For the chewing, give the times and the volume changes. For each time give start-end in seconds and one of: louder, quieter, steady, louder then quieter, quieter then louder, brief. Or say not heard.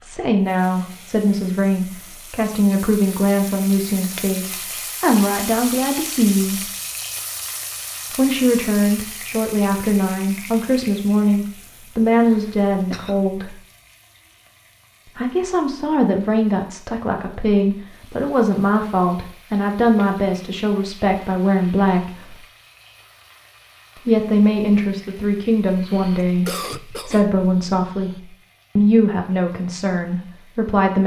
not heard.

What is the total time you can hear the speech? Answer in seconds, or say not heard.
26 s.